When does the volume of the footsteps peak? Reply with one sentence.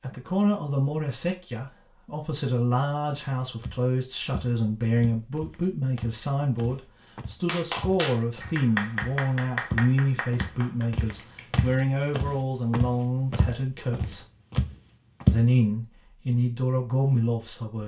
The loudest moment of the footsteps is at 15 seconds.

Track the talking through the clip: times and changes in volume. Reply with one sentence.
The talking can be heard from 0.0 to 14.2 s, at a steady volume; and briefly from 15.3 to 17.8 s.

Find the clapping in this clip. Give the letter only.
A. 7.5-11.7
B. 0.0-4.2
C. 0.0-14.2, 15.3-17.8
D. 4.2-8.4
A.